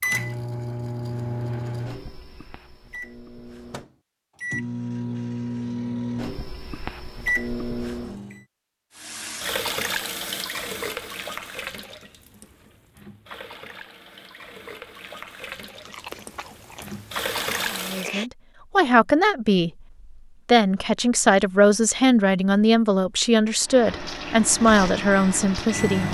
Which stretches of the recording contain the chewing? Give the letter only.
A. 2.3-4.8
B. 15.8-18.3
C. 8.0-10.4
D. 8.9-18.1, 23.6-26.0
B.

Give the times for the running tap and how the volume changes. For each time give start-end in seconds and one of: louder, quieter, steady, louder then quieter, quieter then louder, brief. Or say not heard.
8.9-18.1 quieter then louder
23.6-26.0 brief.